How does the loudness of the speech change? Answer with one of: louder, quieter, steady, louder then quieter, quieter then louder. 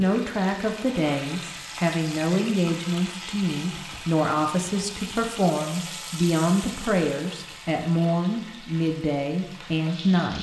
steady.